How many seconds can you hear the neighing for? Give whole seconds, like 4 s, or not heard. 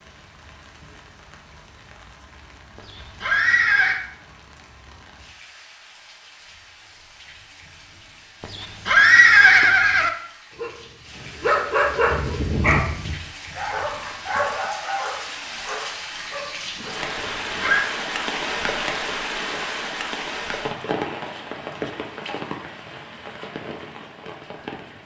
4 s.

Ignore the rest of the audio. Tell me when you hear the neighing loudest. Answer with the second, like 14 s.
9 s.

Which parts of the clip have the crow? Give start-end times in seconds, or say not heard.
not heard.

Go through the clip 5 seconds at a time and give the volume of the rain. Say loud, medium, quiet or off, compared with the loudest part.
quiet, quiet, medium, loud, loud.